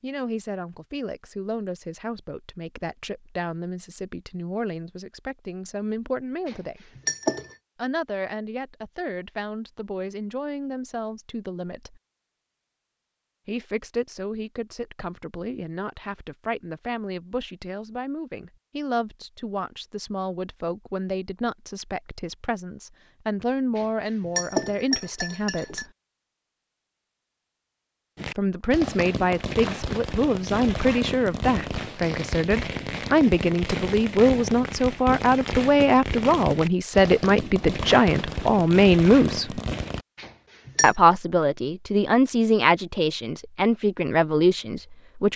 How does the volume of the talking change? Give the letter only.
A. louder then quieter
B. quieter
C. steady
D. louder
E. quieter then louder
D.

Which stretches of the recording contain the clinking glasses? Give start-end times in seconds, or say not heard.
6.5-7.5, 23.8-25.9, 40.1-41.0.